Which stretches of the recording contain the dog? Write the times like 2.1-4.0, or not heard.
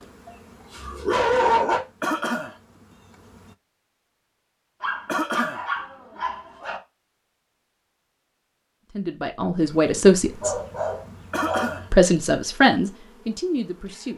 0.2-1.8, 4.8-6.8, 9.9-11.7.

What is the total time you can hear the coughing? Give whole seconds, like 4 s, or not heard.
2 s.